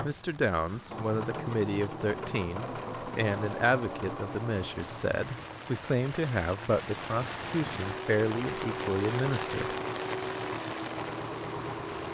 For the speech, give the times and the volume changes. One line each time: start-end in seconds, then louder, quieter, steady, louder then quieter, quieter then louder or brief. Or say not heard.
0.0-9.8 steady.